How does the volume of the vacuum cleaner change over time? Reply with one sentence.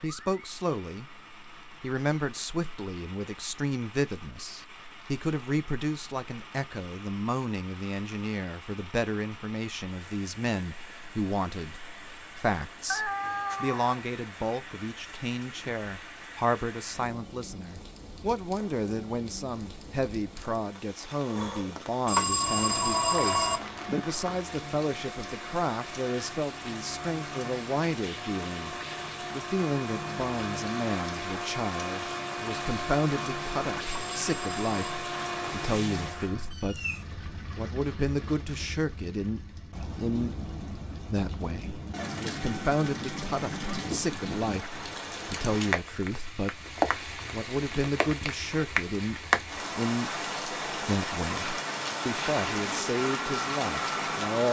The loudness of the vacuum cleaner goes up.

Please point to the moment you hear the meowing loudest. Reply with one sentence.
The volume of the meowing peaks at 13 seconds.